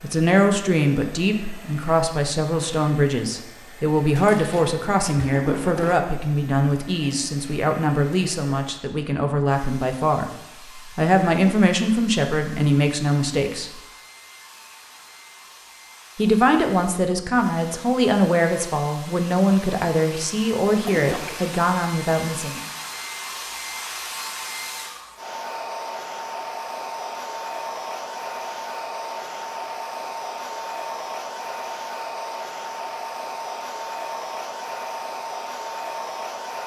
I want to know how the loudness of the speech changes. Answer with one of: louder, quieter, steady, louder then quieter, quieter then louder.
steady.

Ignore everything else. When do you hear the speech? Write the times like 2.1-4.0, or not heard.
0.0-13.7, 16.1-22.6.